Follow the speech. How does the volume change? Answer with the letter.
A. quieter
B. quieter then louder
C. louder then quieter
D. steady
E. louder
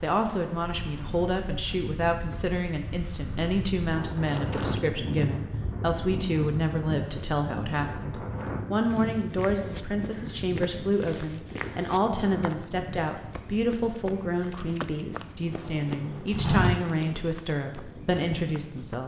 D.